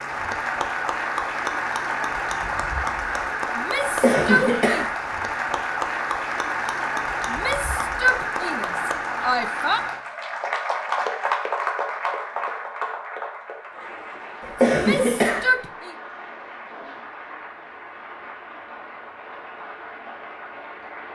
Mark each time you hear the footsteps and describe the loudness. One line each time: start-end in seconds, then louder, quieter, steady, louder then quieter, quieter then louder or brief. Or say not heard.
not heard.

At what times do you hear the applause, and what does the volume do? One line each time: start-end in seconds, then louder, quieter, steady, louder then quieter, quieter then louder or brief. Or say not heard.
0.0-21.1 quieter.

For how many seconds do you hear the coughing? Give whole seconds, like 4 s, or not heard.
2 s.